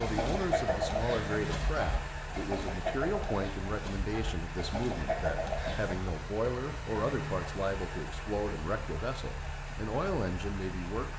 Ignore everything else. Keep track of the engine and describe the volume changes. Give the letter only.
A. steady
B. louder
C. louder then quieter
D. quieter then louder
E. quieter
A.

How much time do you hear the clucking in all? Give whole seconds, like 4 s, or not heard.
6 s.